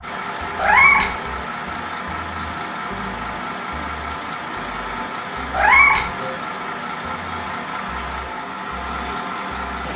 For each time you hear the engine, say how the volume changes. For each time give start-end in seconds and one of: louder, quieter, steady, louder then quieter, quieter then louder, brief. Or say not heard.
0.0-9.9 steady.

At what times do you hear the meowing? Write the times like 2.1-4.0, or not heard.
0.6-1.1, 5.5-6.1.